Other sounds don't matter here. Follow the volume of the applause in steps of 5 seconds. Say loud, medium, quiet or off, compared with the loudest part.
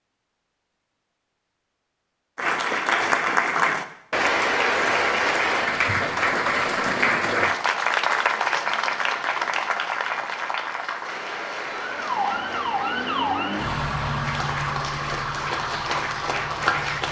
loud, loud, medium, medium.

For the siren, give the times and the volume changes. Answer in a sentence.
The siren can be heard from 11.7 to 17.0 s, getting quieter.